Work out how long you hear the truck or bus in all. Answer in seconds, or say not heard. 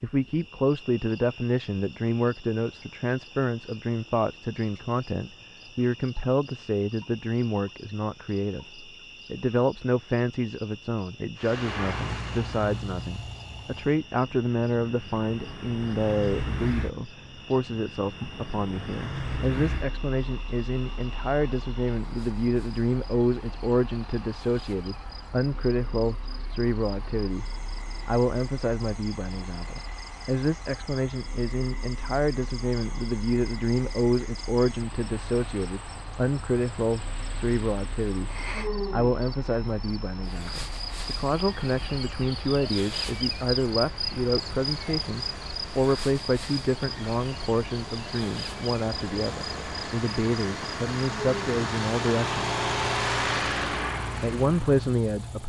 44 s.